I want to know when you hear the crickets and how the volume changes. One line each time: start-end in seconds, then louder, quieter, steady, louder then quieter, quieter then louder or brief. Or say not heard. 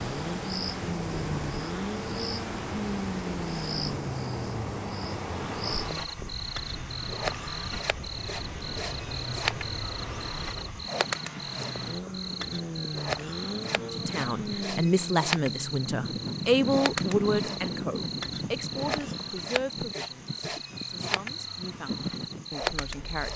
0.0-23.3 steady.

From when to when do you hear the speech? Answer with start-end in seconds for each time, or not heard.
13.8-23.3.